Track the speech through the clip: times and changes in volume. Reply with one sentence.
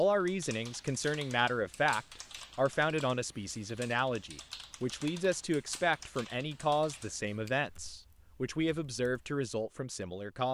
You can hear the speech from 0.0 to 10.5 s, at a steady volume.